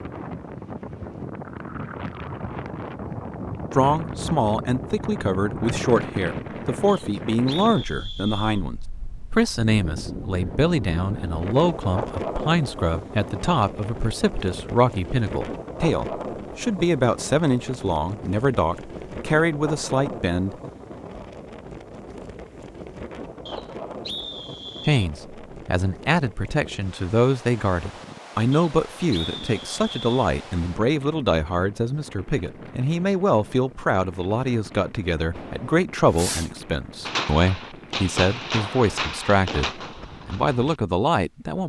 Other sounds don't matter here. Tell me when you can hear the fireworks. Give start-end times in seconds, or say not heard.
35.3-40.8.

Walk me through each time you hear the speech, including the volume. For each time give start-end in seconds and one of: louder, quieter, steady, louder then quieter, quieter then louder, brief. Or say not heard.
3.7-20.6 steady
24.9-41.6 steady.